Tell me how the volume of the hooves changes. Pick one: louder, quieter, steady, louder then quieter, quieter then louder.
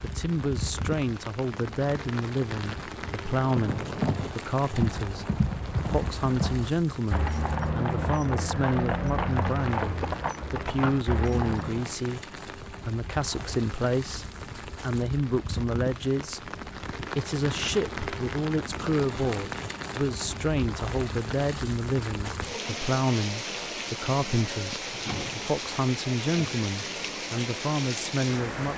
steady.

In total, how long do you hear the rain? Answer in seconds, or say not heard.
29 s.